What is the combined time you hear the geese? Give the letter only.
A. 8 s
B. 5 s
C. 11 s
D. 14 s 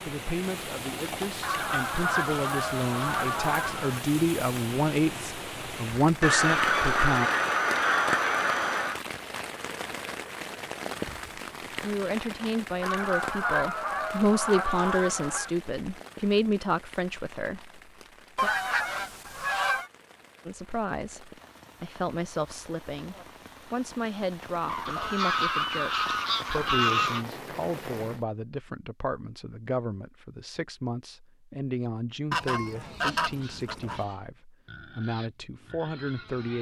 D.